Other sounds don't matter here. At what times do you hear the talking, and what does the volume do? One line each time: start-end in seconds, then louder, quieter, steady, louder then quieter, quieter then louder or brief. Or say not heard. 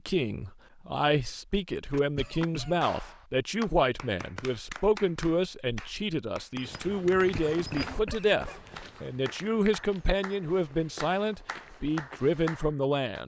0.1-13.2 steady.